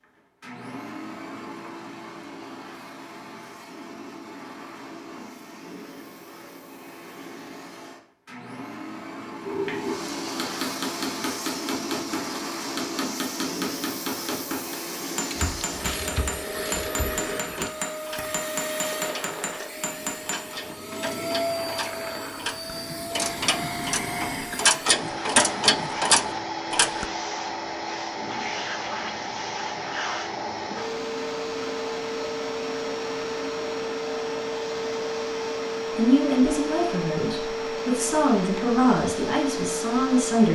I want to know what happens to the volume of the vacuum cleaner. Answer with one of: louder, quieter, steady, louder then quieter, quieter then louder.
louder.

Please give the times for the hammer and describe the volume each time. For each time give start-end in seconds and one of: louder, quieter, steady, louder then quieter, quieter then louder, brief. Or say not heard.
9.4-20.6 steady.